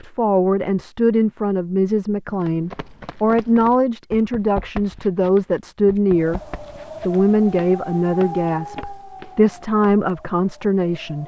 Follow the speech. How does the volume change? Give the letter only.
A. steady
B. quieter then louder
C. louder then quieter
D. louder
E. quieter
A.